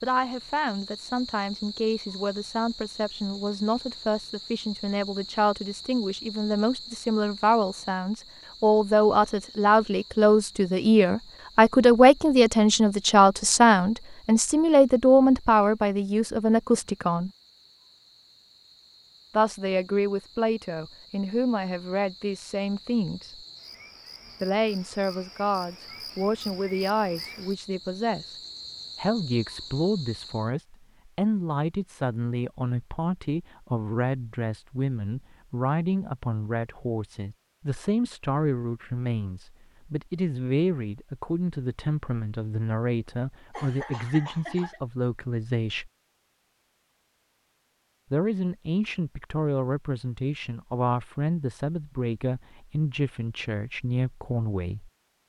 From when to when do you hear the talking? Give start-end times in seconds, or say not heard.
0.0-17.3, 19.4-23.4, 24.4-28.4, 28.9-45.9, 48.1-54.9.